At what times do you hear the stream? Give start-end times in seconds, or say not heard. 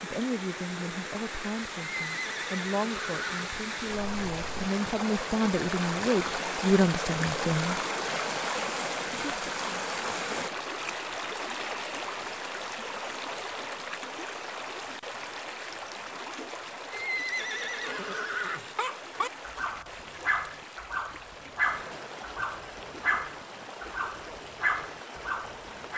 0.0-25.9.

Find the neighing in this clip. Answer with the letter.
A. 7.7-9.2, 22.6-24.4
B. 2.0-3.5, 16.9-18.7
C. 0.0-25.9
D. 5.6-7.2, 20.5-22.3
B.